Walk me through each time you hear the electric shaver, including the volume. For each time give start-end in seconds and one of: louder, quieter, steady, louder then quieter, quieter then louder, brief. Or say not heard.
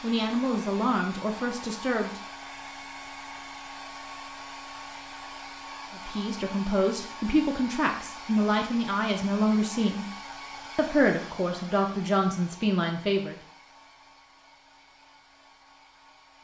not heard.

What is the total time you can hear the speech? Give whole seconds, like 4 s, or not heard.
9 s.